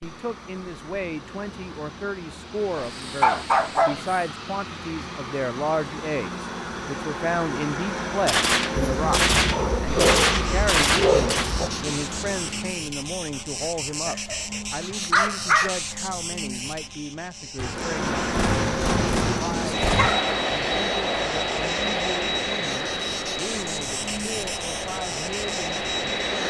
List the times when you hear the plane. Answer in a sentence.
You can hear the plane from 0.0 to 12.8 s and from 17.6 to 26.4 s.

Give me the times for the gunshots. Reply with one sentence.
The gunshots can be heard from 8.2 to 11.6 s and from 17.6 to 20.1 s.